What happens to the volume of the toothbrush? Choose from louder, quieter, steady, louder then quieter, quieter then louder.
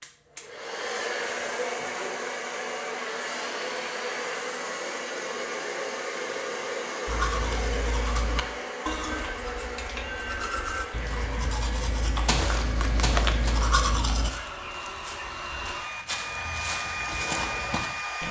louder.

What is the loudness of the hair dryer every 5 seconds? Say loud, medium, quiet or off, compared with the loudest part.
loud, loud, medium, loud.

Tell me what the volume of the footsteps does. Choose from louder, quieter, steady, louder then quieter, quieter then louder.
quieter then louder.